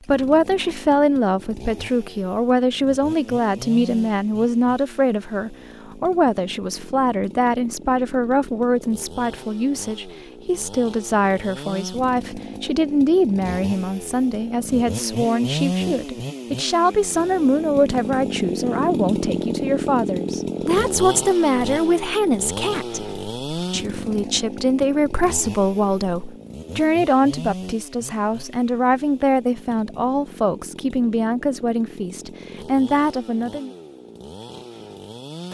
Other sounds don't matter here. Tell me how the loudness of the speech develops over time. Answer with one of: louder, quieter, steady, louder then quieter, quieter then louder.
steady.